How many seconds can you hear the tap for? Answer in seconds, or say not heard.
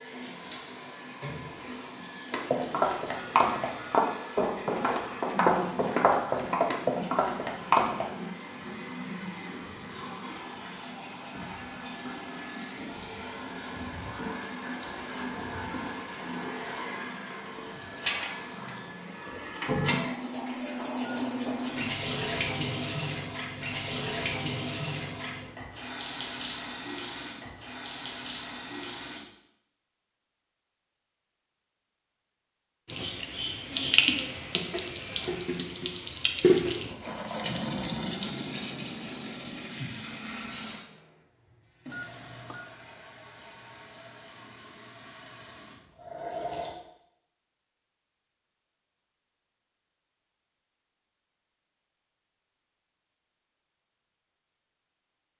43 s.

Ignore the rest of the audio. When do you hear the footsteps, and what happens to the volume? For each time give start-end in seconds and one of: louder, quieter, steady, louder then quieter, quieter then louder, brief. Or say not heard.
2.3-8.1 steady.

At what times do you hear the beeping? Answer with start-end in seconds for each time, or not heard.
3.1-4.2, 21.0-21.6, 41.9-42.6.